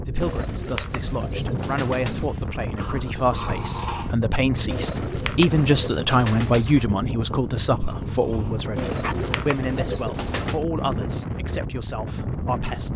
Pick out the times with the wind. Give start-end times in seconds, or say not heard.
0.0-12.9.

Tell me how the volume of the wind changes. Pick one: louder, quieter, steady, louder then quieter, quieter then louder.
steady.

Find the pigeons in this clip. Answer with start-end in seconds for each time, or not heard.
0.2-2.5, 4.7-6.9, 8.8-10.7.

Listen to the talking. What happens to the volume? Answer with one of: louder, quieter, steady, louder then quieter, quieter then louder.
louder then quieter.